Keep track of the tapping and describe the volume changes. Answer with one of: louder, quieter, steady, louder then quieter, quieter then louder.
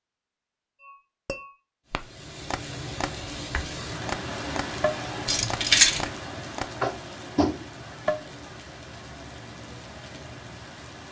louder.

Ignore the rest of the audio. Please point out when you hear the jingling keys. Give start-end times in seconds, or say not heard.
5.2-6.1.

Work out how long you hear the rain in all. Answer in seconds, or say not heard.
9 s.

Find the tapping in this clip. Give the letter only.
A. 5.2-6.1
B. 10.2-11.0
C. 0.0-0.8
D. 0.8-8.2
D.